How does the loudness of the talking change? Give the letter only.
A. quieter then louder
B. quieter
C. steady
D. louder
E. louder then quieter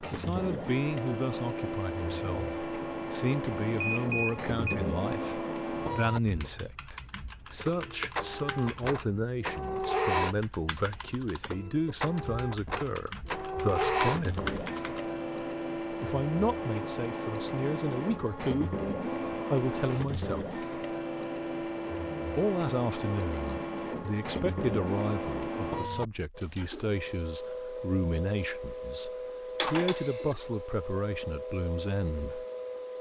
C.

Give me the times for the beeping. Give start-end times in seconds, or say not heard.
3.8-4.8.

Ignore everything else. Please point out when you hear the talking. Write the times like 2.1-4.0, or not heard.
0.0-14.5, 15.9-20.6, 22.4-32.5.